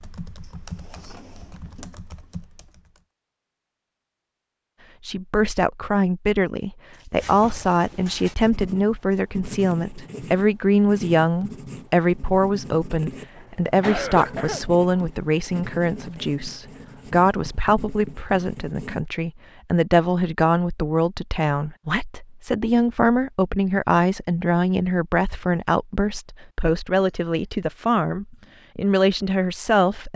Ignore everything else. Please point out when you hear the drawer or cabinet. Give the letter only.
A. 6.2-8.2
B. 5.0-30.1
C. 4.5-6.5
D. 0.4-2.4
D.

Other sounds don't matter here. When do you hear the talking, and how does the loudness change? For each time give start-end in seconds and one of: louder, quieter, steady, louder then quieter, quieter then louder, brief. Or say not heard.
5.0-30.1 steady.